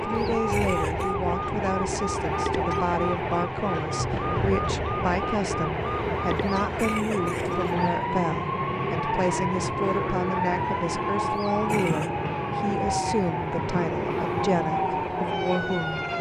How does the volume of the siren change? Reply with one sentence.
The volume of the siren stays about the same.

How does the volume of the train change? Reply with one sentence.
The volume of the train stays about the same.